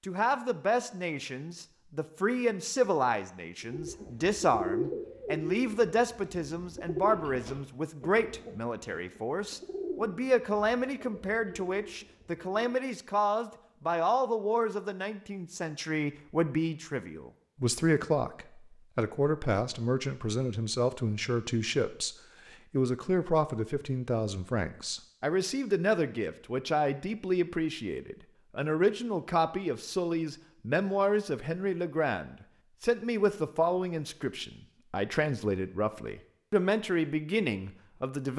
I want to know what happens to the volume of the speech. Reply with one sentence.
The loudness of the speech stays about the same.